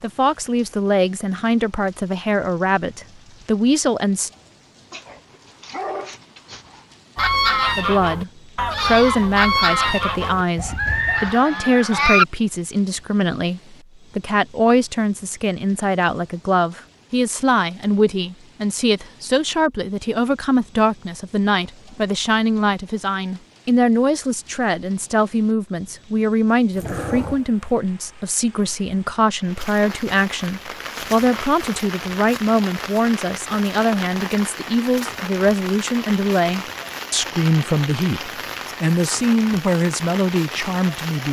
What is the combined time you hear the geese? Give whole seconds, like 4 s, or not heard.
5 s.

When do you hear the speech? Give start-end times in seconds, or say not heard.
0.0-4.3, 7.8-41.2.